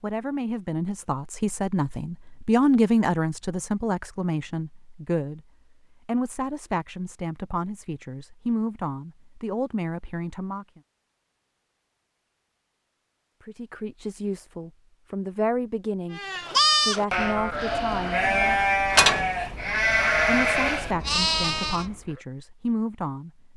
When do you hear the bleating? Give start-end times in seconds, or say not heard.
16.1-21.9.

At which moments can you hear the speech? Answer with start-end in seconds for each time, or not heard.
0.0-5.4, 6.0-10.8, 13.4-18.6, 20.2-23.5.